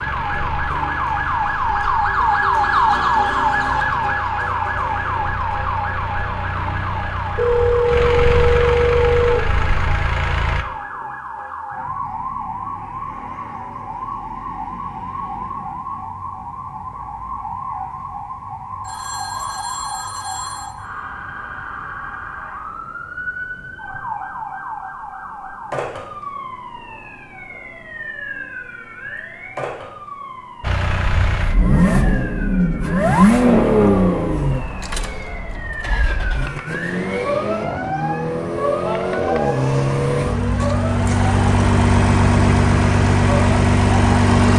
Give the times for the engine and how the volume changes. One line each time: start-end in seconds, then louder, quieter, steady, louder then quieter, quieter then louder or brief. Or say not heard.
0.0-10.7 louder
30.6-44.5 quieter then louder.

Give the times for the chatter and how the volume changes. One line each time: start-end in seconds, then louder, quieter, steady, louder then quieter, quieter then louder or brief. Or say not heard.
not heard.